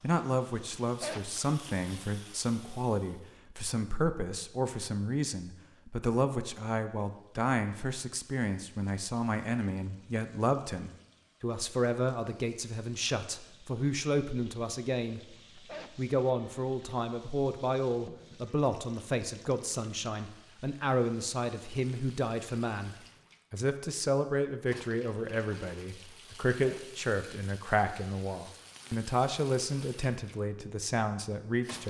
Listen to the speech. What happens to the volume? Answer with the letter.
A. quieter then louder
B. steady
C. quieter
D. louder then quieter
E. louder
B.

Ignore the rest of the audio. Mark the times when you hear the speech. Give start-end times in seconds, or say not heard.
0.0-15.2, 15.9-31.8.